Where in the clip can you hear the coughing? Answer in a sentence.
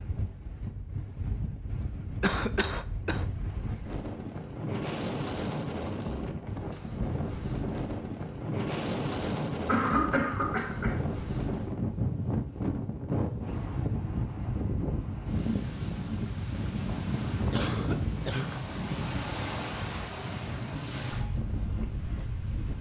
The coughing can be heard from 2.2 to 3.2 s, from 9.7 to 11.0 s and from 17.5 to 18.6 s.